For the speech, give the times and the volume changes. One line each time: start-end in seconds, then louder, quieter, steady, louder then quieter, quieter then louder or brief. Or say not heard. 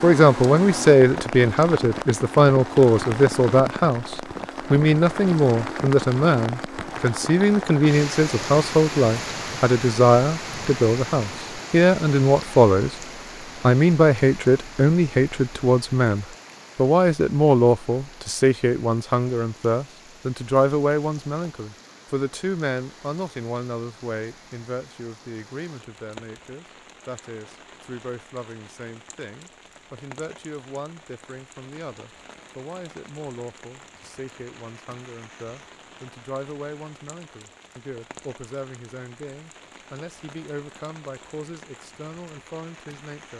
0.0-12.9 steady
13.6-43.3 quieter.